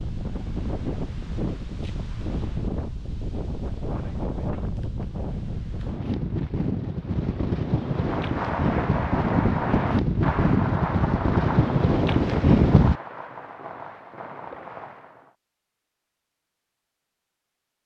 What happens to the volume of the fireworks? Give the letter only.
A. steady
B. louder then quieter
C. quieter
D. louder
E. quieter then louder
C.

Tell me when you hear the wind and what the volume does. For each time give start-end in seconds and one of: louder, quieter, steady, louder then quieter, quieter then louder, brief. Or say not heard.
0.0-12.9 louder.